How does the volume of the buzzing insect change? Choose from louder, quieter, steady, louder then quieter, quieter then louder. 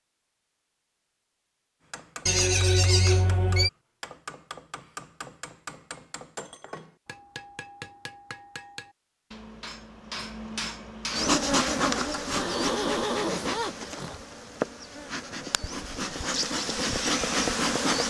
quieter then louder.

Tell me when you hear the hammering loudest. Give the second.
11 s.